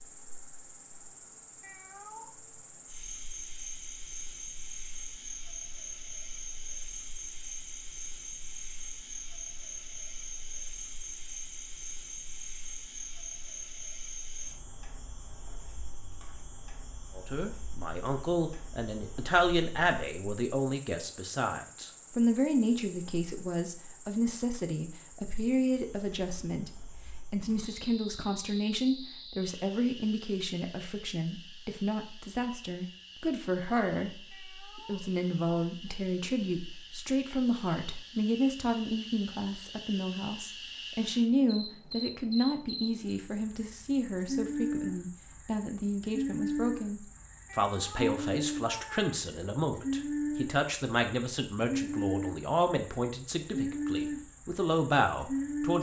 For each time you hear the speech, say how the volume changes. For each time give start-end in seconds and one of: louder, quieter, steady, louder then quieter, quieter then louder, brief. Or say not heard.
17.1-55.7 steady.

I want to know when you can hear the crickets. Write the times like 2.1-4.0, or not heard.
0.0-55.7.